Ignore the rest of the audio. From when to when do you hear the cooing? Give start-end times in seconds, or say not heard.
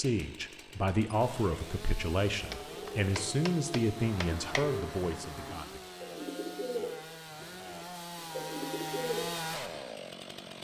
2.4-9.8.